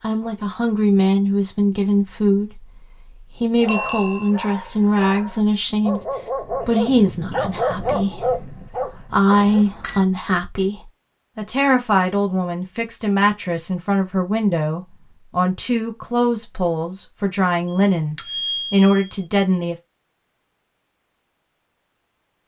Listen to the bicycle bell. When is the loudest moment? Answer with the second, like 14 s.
4 s.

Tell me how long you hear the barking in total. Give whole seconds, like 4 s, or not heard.
6 s.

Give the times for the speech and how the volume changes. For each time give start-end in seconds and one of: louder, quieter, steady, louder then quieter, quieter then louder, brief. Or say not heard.
0.0-19.8 steady.